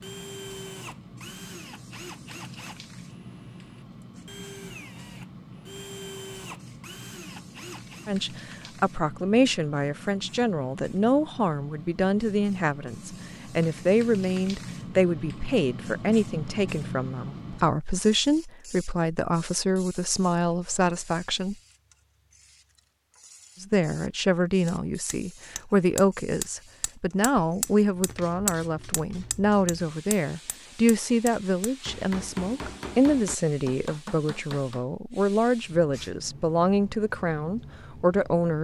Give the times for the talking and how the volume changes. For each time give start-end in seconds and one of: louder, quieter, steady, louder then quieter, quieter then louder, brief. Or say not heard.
8.1-21.6 steady
23.6-38.5 steady.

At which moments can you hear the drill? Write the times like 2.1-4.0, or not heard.
0.0-8.1.